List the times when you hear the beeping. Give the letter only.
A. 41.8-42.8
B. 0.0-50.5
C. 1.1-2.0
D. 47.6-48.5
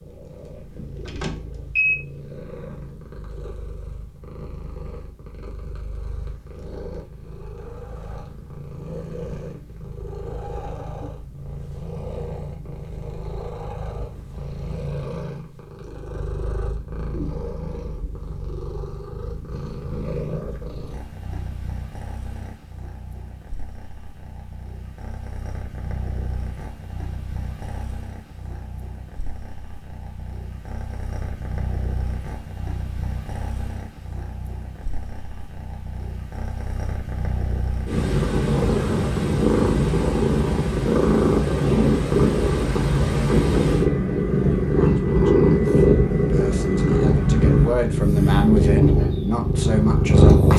C.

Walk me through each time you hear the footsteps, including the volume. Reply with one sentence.
The footsteps can't be heard in this clip.